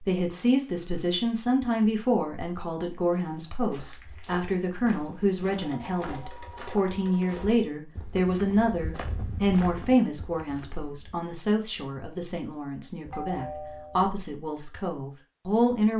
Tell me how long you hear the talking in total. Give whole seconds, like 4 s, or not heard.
16 s.